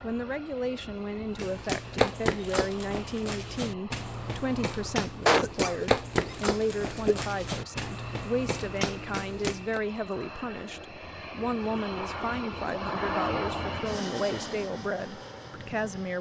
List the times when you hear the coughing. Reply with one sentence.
The coughing can be heard from 5.2 to 7.2 s.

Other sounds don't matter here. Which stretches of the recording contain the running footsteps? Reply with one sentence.
You can hear the running footsteps from 1.4 to 9.8 s.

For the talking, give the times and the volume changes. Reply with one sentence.
You can hear the talking from 0.0 to 16.1 s, at a steady volume.